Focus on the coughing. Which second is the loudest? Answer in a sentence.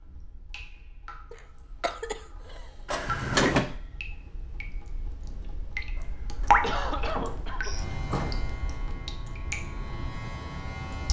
The volume of the coughing peaks at 7 seconds.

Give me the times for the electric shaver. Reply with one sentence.
The electric shaver can be heard from 7.6 to 11.0 s.